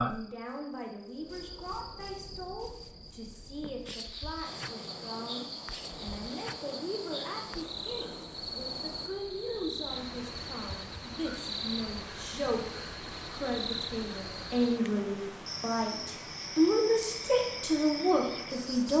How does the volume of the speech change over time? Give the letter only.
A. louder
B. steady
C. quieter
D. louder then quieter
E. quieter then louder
A.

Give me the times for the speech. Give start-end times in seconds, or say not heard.
0.0-18.9.